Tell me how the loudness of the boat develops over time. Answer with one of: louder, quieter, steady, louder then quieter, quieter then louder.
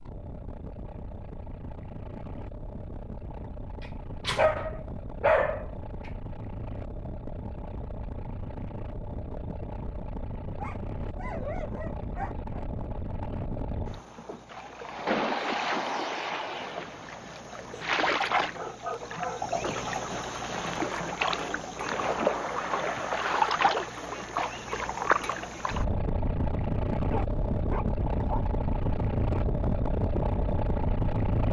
louder.